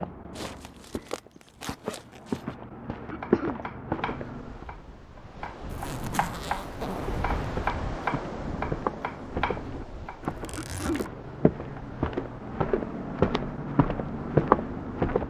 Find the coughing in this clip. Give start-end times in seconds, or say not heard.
3.1-3.6, 10.6-11.1.